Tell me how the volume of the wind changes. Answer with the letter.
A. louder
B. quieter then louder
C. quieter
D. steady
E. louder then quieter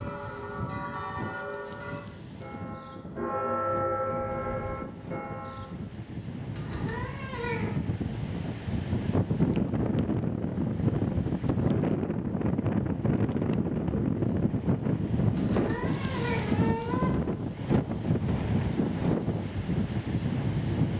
A.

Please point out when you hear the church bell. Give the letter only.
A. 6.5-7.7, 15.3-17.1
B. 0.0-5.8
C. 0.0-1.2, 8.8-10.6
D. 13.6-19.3
B.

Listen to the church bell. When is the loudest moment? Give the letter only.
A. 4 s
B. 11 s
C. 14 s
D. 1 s
A.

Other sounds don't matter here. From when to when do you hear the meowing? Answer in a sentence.
The meowing can be heard from 6.5 to 7.7 s and from 15.3 to 17.1 s.